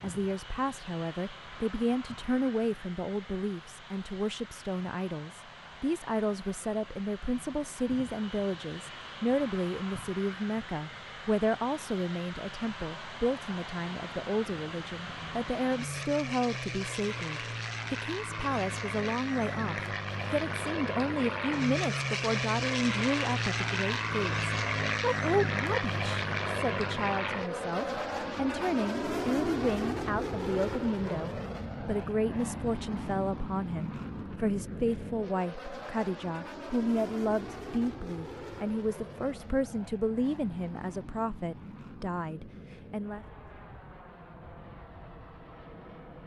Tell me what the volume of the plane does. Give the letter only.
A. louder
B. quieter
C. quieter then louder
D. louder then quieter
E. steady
D.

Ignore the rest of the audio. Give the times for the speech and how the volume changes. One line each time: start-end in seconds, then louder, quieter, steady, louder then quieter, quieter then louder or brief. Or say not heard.
0.0-43.2 steady.